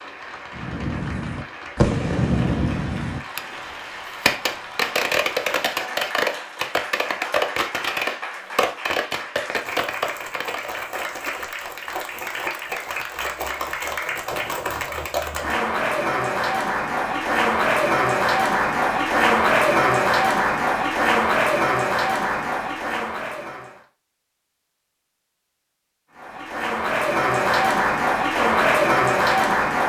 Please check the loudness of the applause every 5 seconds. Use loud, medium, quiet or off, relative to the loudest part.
quiet, quiet, medium, loud, loud, loud.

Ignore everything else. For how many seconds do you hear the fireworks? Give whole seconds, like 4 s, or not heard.
10 s.